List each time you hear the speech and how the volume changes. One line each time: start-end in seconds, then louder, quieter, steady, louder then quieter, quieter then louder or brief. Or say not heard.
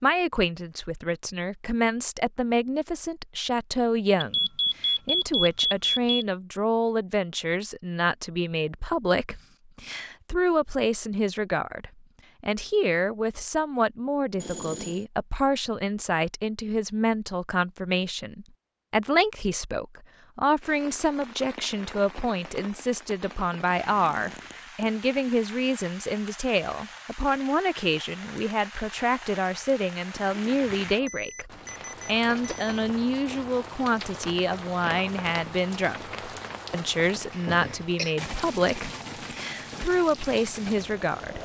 0.0-41.4 steady.